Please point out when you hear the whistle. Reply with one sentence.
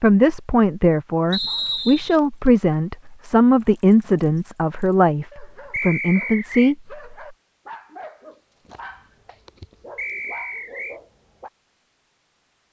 You can hear the whistle from 1.3 to 2.1 s, from 5.7 to 6.8 s and from 9.9 to 11.0 s.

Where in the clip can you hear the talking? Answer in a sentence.
The talking can be heard from 0.0 to 7.2 s.